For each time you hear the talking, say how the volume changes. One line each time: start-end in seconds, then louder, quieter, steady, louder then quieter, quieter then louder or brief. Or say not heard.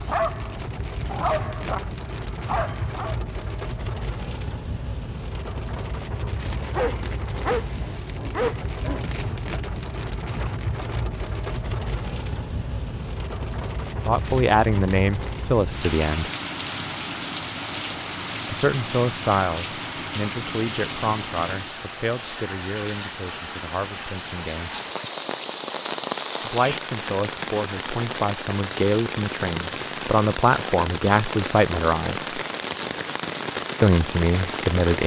14.1-16.3 brief
18.4-24.7 quieter
26.4-32.2 louder
33.8-35.0 brief.